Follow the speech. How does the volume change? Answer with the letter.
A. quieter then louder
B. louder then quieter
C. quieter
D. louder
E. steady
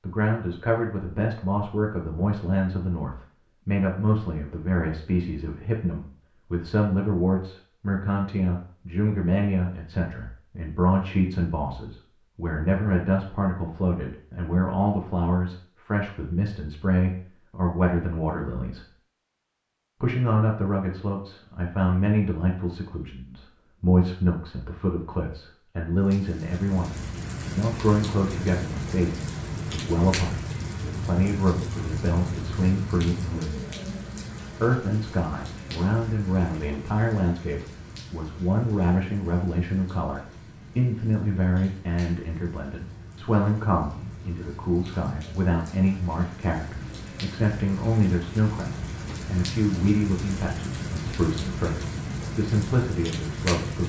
E.